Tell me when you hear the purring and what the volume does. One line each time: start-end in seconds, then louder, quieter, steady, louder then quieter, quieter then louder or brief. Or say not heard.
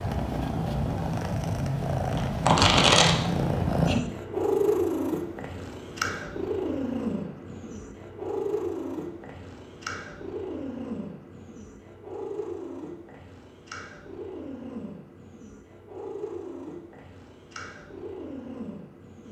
0.0-19.2 quieter.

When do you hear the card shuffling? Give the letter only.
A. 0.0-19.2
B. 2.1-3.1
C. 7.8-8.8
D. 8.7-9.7
B.